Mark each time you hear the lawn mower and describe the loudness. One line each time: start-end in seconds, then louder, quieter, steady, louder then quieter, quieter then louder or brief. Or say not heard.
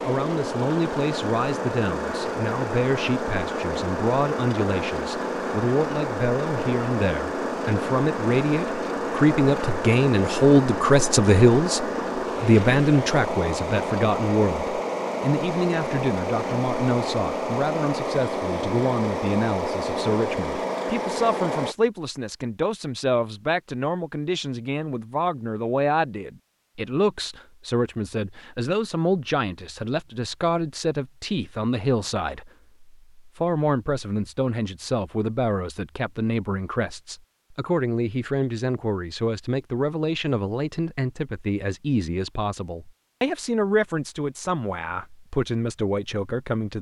0.0-21.8 steady.